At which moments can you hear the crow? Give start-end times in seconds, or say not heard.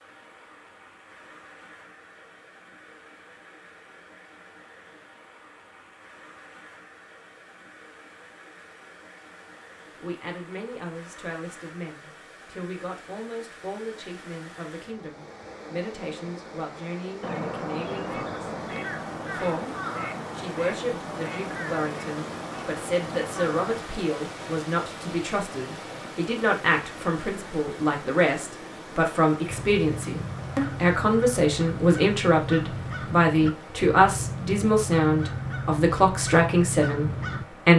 17.2-23.8, 29.5-37.5.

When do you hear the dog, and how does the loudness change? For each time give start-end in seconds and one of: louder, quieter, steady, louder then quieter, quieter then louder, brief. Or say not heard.
not heard.